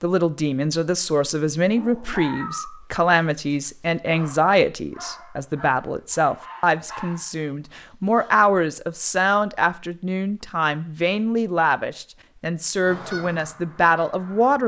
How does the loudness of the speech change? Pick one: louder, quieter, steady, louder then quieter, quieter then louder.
steady.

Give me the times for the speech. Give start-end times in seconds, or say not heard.
0.0-14.6.